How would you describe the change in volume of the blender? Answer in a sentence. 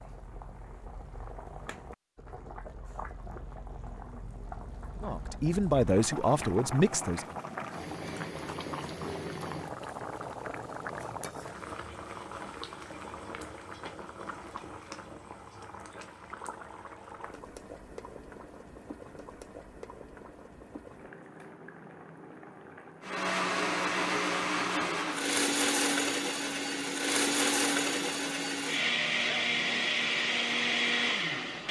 The loudness of the blender stays about the same.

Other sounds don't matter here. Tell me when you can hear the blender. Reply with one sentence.
The blender can be heard from 23.0 to 31.6 s.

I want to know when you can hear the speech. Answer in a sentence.
You can hear the speech from 5.0 to 7.3 s.